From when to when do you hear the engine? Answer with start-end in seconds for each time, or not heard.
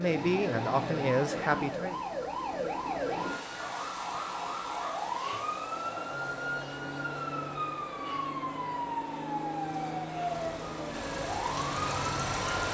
10.2-12.7.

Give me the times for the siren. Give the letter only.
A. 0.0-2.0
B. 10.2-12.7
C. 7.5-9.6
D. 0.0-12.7
D.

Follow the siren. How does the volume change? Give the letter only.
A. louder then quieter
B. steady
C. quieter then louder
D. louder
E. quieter
B.